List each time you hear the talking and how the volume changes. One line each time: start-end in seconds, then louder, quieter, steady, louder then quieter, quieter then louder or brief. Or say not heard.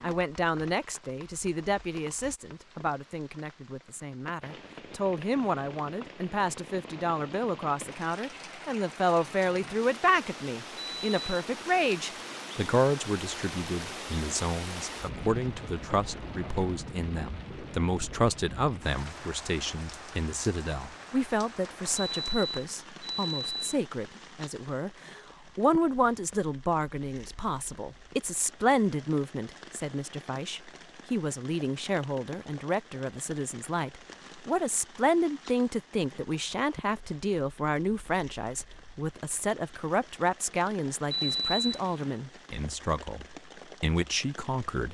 0.0-44.8 steady.